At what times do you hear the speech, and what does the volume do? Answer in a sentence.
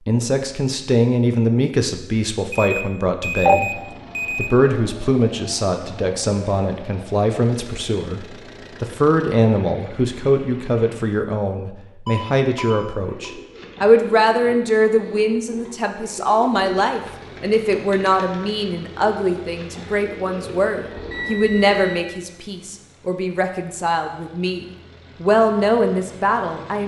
You can hear the speech from 0.1 to 26.8 s, at a steady volume.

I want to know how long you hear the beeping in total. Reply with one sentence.
The beeping can be heard for 4 seconds in total.